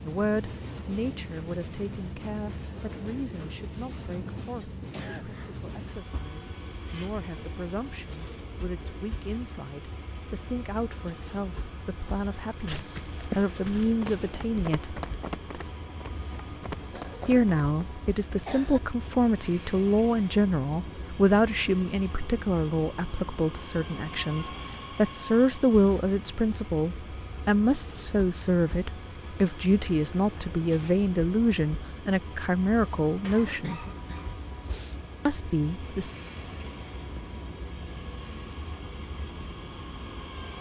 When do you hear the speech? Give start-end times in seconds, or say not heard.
0.0-14.9, 17.2-33.8, 35.2-36.1.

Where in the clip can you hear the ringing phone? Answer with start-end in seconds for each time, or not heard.
not heard.